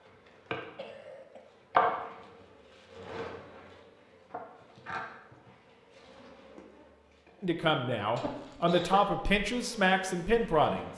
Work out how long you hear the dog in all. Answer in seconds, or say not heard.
not heard.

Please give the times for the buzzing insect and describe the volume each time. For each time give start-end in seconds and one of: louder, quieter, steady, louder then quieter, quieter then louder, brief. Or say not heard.
0.0-8.4 quieter
9.4-10.9 brief.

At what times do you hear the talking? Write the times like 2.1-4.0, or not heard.
7.4-10.9.